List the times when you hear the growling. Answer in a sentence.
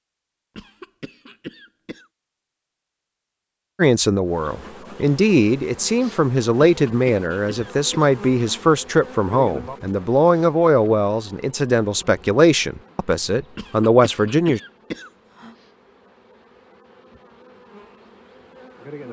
The growling can't be heard in this clip.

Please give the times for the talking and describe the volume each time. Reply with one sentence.
You can hear the talking from 3.8 to 14.6 s, at a steady volume.